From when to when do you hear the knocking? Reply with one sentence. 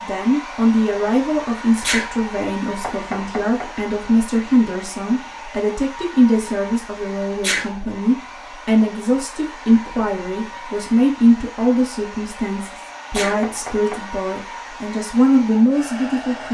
The knocking can be heard from 2.8 to 3.8 s and from 13.2 to 14.1 s.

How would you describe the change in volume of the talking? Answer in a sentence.
The volume of the talking stays about the same.